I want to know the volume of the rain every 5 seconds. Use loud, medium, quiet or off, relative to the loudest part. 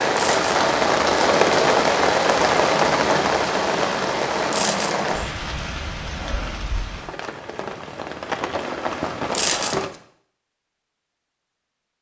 loud, medium, off.